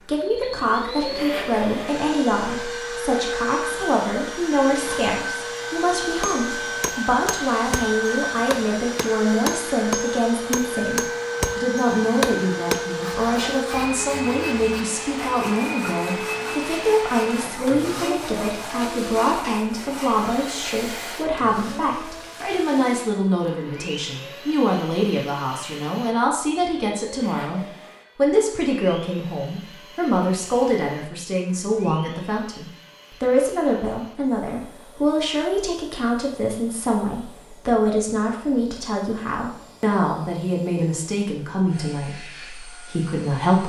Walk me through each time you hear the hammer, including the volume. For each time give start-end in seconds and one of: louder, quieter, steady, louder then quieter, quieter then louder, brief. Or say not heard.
6.2-12.8 louder.